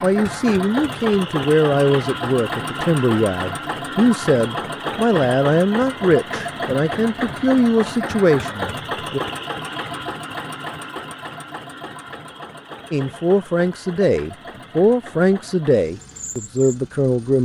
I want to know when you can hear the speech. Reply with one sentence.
You can hear the speech from 0.0 to 9.2 s and from 12.9 to 17.4 s.